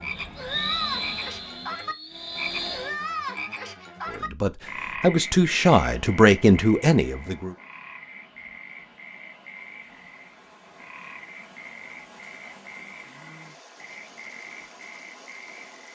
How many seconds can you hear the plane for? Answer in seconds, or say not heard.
3 s.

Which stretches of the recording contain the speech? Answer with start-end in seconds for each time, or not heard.
4.1-7.5.